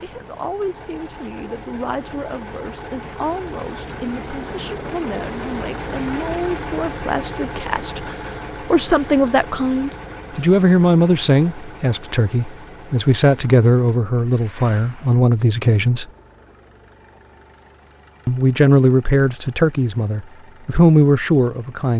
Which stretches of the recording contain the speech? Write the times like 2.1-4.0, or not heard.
0.0-16.1, 18.2-21.9.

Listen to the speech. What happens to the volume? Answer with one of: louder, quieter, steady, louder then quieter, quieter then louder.
louder.